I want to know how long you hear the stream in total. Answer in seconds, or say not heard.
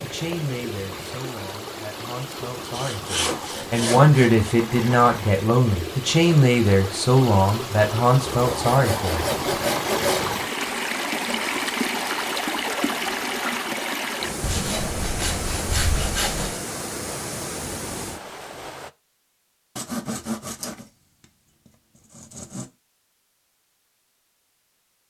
19 s.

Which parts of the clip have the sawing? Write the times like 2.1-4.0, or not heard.
2.7-4.3, 8.2-10.2, 14.4-16.6, 19.8-20.9, 22.1-22.6.